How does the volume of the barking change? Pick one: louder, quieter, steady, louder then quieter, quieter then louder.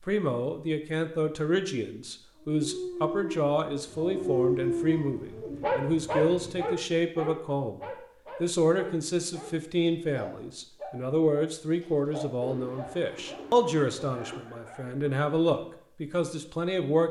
louder then quieter.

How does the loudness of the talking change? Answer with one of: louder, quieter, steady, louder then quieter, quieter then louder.
steady.